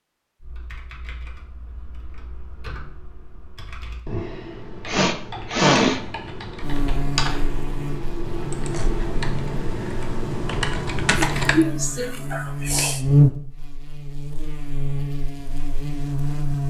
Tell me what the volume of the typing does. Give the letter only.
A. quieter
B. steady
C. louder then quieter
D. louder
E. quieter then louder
D.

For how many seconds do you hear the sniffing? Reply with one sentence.
The sniffing can be heard for 3 seconds in total.